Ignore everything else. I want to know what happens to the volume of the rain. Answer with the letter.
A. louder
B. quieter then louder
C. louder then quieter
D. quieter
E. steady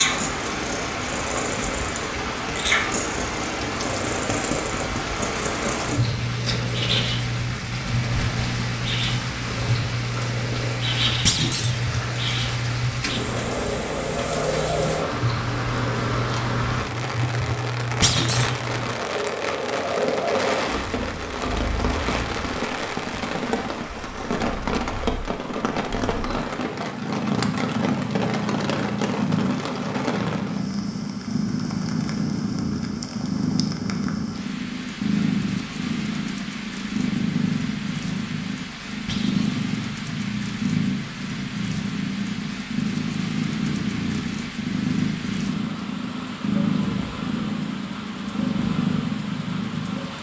D.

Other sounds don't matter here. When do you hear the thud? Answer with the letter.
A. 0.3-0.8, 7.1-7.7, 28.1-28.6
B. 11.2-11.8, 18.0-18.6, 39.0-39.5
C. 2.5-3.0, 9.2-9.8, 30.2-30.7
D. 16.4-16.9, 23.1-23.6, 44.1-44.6
B.